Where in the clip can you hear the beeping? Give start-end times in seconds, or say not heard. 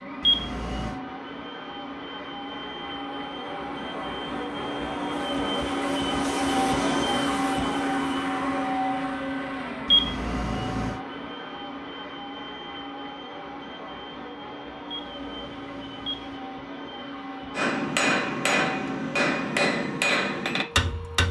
0.2-1.0, 9.8-11.0, 14.8-16.4.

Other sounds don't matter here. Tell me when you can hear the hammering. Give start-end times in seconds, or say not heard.
17.6-21.2.